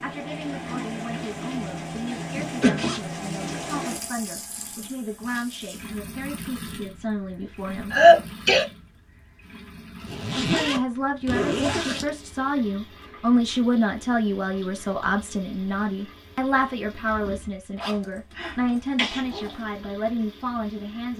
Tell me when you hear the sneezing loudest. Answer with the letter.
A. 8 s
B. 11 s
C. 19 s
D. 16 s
A.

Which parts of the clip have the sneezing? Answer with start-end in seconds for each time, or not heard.
7.9-8.7, 18.4-19.4.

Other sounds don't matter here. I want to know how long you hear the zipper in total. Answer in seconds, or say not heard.
5 s.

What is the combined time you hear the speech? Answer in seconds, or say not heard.
19 s.